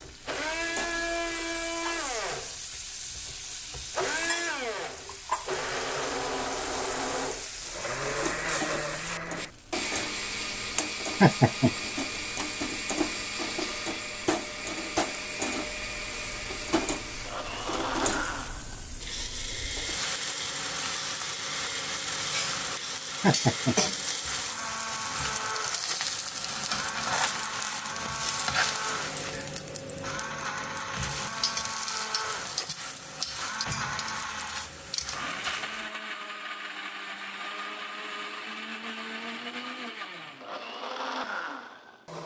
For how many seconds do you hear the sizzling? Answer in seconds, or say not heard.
36 s.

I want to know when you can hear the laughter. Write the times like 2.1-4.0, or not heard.
11.2-11.7, 23.2-23.8.